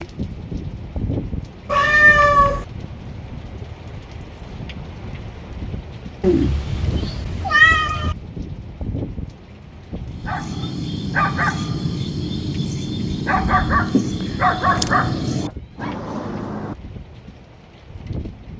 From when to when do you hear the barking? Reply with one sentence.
You can hear the barking from 10.1 to 15.9 s.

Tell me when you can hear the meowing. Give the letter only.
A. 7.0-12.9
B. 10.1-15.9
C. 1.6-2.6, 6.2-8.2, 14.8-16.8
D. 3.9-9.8
C.